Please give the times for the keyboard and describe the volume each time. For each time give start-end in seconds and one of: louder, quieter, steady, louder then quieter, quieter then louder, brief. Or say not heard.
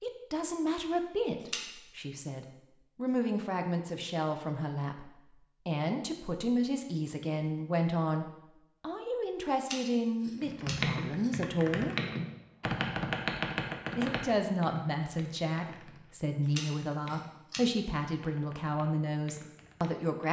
10.4-20.1 quieter.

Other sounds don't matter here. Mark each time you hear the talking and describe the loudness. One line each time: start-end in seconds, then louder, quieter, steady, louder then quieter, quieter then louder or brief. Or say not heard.
0.0-11.9 steady
13.9-20.2 steady.